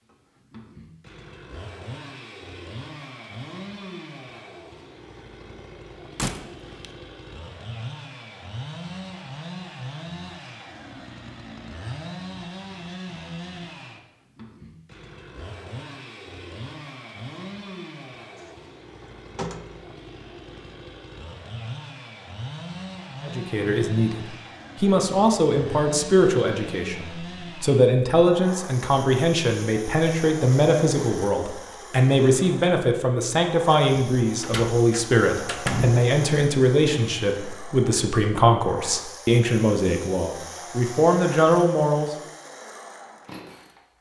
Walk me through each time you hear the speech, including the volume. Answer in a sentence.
You can hear the speech from 23.2 to 42.1 s, at a steady volume.